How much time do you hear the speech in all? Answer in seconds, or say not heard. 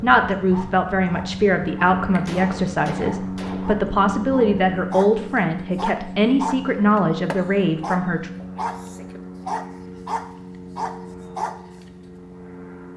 8 s.